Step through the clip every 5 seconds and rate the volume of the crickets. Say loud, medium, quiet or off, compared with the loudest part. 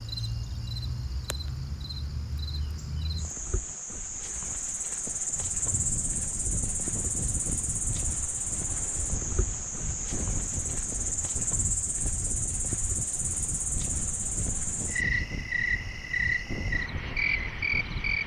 medium, loud, loud, loud.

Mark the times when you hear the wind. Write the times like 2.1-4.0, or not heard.
5.1-18.2.